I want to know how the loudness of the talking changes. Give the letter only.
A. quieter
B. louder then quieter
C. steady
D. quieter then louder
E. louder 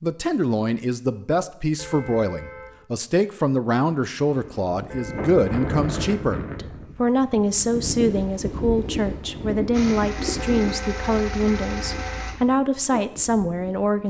C.